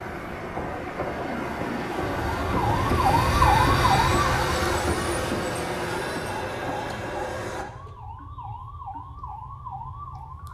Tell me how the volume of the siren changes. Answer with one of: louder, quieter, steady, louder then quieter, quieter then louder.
quieter.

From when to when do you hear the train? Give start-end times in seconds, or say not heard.
0.0-7.7.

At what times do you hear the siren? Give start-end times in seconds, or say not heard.
2.0-10.4.